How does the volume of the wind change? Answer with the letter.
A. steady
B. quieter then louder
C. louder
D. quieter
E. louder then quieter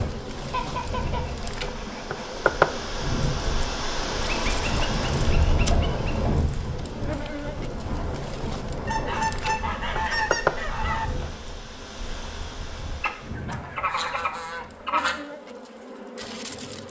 E.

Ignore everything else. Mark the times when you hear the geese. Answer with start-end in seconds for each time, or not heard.
0.5-2.2, 4.2-6.5, 8.8-11.1, 13.0-15.2.